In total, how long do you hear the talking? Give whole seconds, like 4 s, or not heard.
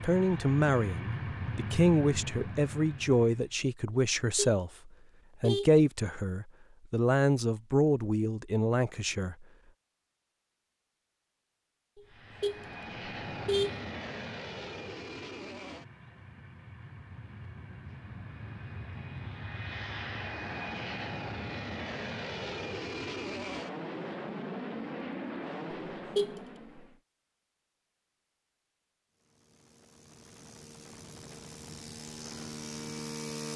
9 s.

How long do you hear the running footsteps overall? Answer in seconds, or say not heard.
not heard.